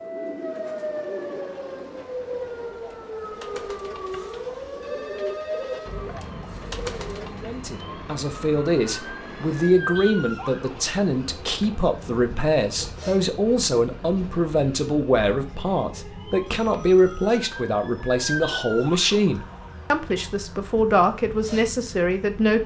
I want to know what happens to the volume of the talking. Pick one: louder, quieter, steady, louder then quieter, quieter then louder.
steady.